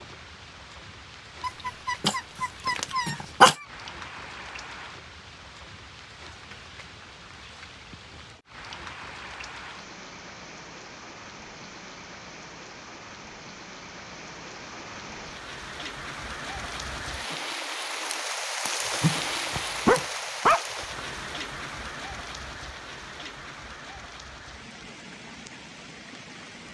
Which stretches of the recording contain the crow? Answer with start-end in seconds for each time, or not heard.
not heard.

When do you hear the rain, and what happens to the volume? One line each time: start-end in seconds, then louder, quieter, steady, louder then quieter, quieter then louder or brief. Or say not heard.
0.0-26.6 louder then quieter.